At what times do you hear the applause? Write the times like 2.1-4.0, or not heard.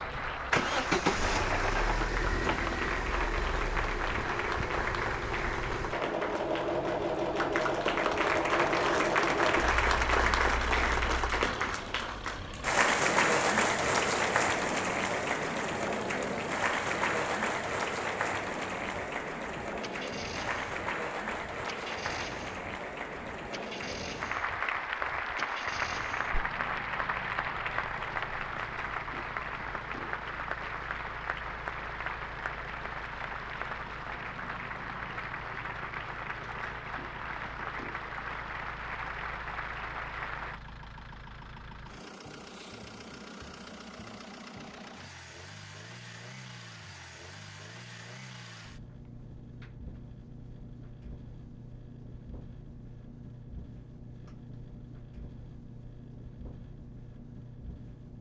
0.0-40.6.